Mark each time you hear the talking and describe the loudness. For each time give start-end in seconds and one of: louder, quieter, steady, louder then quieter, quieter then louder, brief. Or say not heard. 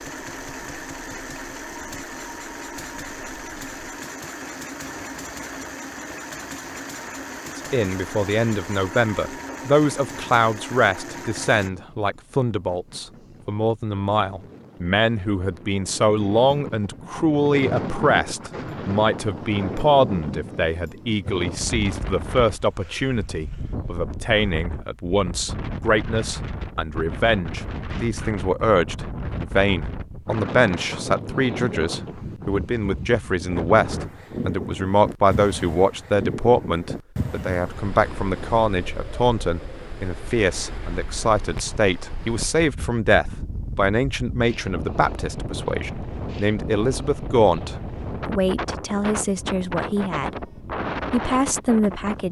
7.5-50.5 steady
51.1-52.2 brief.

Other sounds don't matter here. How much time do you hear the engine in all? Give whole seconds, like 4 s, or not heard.
12 s.